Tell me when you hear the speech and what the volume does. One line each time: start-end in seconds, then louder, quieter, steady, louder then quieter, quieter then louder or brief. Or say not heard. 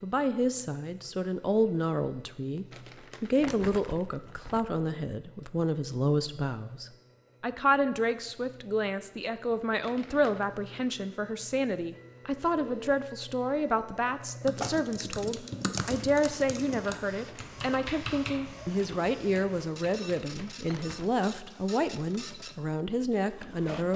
0.0-23.9 steady.